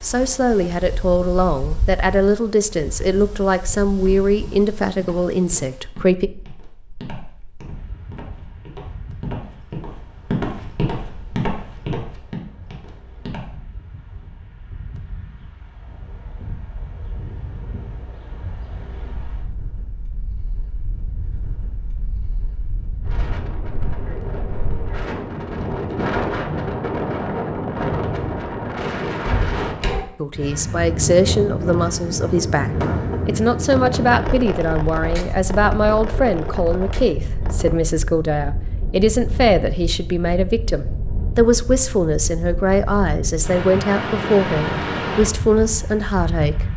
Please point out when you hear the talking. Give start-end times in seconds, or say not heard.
0.0-6.3, 30.2-46.6.